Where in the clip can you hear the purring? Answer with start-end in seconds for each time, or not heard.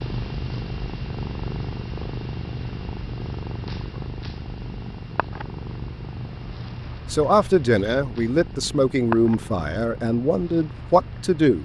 0.0-11.6.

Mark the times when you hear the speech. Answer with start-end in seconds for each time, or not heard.
7.1-11.6.